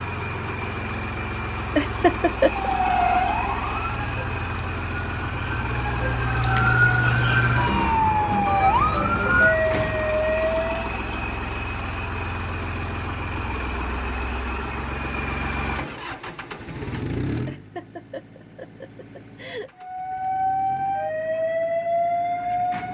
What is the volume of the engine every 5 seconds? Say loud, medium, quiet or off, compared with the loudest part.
loud, loud, loud, loud, quiet.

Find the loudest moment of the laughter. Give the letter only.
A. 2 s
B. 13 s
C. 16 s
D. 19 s
A.